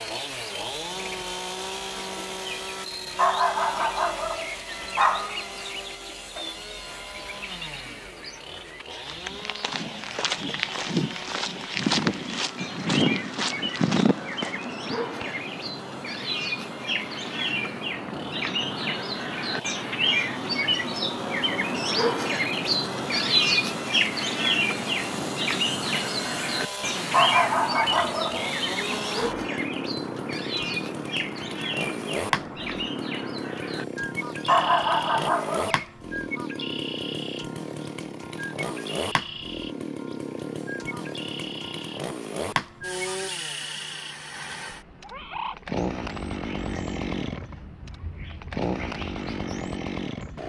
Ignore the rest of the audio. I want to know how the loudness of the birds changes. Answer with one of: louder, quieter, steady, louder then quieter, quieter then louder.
louder then quieter.